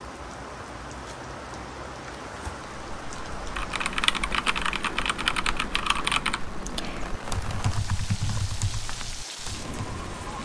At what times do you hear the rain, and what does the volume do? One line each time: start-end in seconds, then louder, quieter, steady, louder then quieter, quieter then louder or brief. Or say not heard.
0.0-10.3 steady.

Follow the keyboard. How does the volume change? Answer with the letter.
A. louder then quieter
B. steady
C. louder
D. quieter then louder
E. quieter
E.